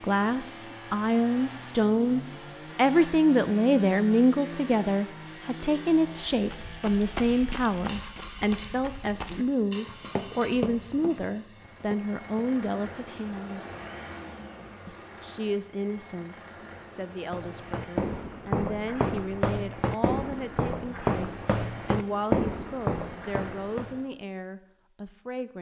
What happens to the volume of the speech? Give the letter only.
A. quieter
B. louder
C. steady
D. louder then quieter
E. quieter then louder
A.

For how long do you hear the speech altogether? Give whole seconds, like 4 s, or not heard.
24 s.